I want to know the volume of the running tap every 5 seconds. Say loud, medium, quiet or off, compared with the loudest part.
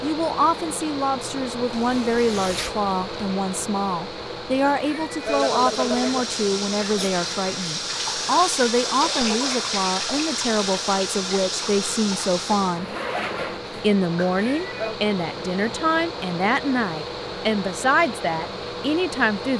off, loud, loud, off.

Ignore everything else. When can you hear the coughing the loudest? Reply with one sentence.
The loudest moment of the coughing is at 6 seconds.